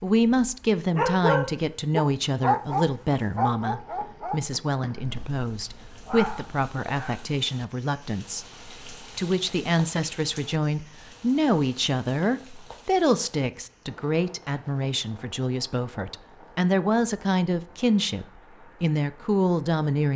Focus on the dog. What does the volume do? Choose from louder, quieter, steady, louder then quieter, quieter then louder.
quieter then louder.